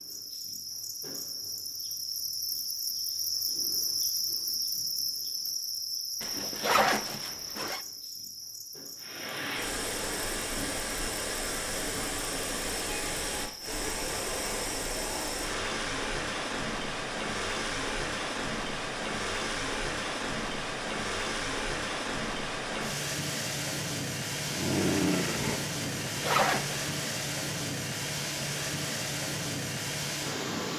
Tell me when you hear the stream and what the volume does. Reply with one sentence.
You can hear the stream from 9.0 to 30.7 s, at a steady volume.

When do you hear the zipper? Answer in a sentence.
The zipper can be heard from 6.2 to 7.8 s and from 26.1 to 26.9 s.